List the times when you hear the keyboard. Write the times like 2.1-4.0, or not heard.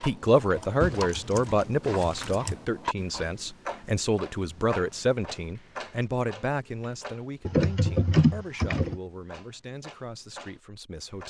0.6-2.7, 7.5-8.9.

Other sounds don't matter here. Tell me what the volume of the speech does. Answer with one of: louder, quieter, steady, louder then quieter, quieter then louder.
quieter.